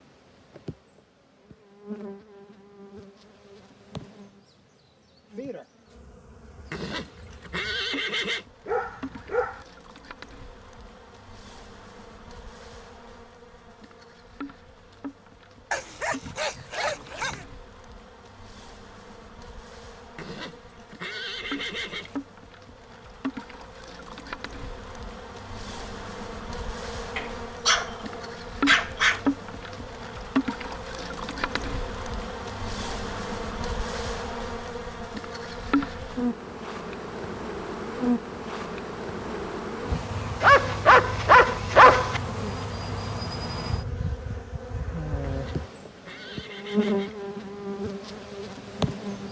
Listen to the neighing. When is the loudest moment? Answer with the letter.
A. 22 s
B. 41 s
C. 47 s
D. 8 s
D.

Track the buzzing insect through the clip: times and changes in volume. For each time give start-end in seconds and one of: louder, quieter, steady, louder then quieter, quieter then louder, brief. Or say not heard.
0.0-49.2 louder.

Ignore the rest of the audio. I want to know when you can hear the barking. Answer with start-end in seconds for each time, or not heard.
8.7-9.7, 15.7-17.4, 27.1-29.2, 40.4-42.2.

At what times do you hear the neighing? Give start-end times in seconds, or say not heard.
6.7-8.4, 20.1-22.2, 45.2-47.2.